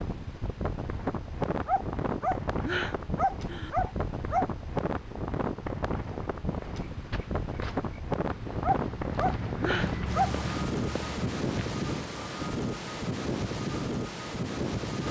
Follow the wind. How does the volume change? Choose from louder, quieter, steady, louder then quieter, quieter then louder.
steady.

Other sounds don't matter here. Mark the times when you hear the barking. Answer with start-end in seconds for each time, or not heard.
1.6-4.5, 8.6-10.5.